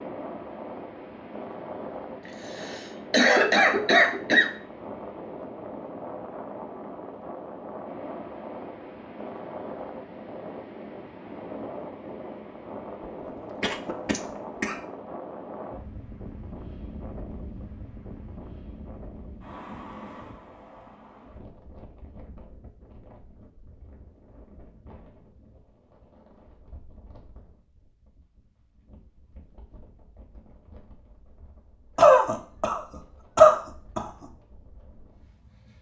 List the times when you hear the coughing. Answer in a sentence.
You can hear the coughing from 2.5 to 4.5 s, from 13.3 to 14.8 s and from 31.9 to 34.0 s.